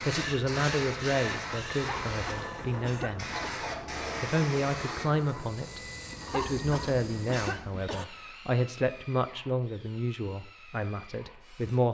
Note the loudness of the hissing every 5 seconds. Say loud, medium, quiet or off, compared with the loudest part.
loud, medium, off.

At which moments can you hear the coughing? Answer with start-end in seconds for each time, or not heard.
1.8-3.6, 6.2-8.1.